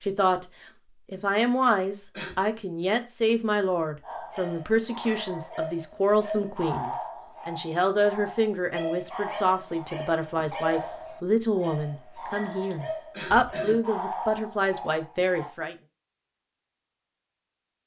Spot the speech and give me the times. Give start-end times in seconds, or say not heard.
0.0-0.5, 1.1-15.8.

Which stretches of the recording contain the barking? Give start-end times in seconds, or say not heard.
4.0-15.6.